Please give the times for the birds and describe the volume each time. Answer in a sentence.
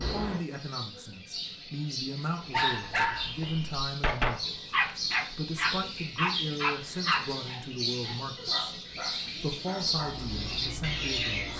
The birds can be heard from 0.0 to 11.5 s, getting louder.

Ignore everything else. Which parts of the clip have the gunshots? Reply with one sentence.
You can hear the gunshots from 3.4 to 5.0 s.